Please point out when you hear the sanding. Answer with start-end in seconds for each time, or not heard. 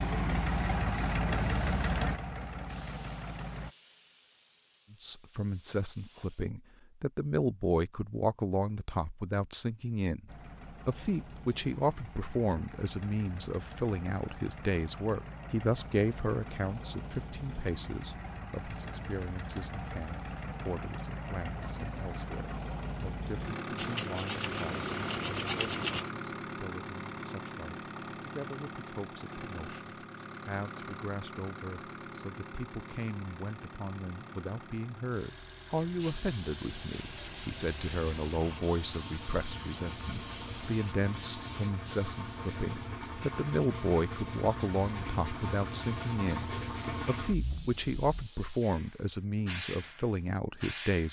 23.8-26.1.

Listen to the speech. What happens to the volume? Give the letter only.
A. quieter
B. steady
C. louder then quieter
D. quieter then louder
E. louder
D.